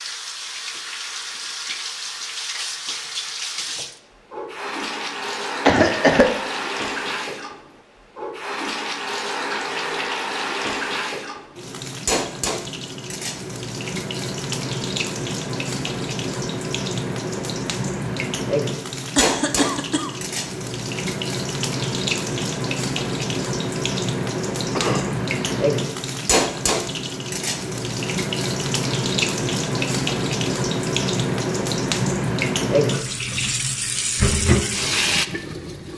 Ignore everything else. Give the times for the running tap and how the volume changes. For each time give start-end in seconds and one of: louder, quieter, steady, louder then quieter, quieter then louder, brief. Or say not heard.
0.0-35.9 louder.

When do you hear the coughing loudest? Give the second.
6 s.